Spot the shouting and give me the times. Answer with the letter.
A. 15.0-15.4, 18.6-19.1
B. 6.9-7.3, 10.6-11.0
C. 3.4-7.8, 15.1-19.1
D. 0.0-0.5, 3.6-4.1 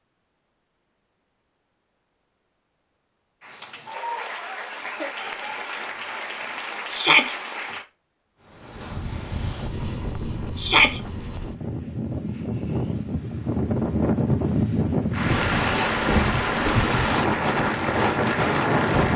B.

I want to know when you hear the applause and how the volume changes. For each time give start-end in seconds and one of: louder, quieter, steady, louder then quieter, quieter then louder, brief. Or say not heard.
3.4-7.8 steady
15.1-19.1 steady.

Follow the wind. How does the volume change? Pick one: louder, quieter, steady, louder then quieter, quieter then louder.
louder.